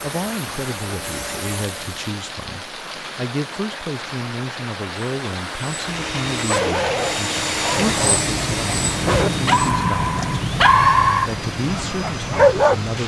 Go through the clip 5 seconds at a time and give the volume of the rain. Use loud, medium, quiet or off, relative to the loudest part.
medium, loud, loud.